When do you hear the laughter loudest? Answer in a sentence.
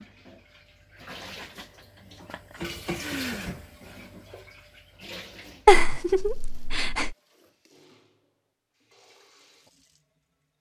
The loudest moment of the laughter is at 6 seconds.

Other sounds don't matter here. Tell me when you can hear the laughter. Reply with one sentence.
You can hear the laughter from 1.0 to 3.5 s and from 5.7 to 7.2 s.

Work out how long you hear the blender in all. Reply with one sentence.
You can't hear the blender here.